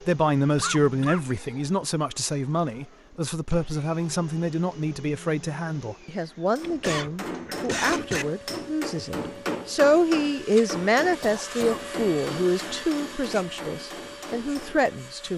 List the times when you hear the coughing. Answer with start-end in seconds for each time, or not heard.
0.6-1.2, 6.6-8.2, 11.2-11.8.